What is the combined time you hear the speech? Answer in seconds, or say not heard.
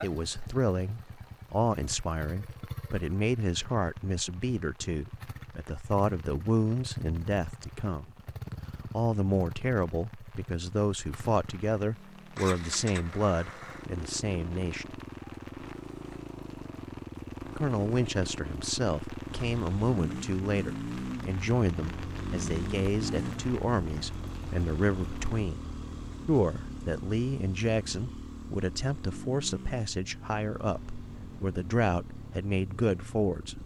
30 s.